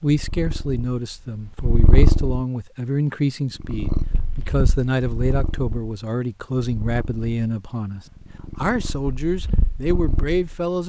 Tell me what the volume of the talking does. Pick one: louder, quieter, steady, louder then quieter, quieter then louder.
steady.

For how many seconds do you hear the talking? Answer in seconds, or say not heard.
11 s.